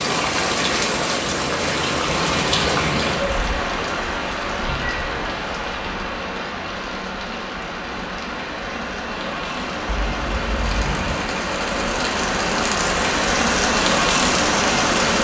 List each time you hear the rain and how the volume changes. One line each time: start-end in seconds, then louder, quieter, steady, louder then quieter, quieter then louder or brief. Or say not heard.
0.0-15.1 quieter then louder.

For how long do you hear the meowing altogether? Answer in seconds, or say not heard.
2 s.